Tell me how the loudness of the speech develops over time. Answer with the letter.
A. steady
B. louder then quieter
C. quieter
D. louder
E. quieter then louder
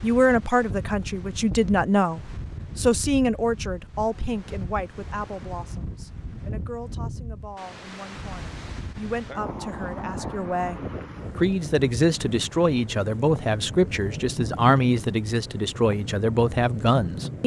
E.